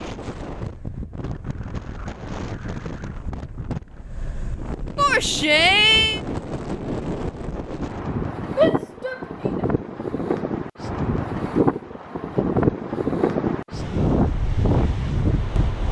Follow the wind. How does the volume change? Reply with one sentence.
The loudness of the wind goes up.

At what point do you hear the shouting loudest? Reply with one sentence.
The loudest moment of the shouting is at 6 seconds.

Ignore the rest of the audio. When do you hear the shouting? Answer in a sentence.
The shouting can be heard from 5.0 to 6.2 s and from 8.6 to 9.7 s.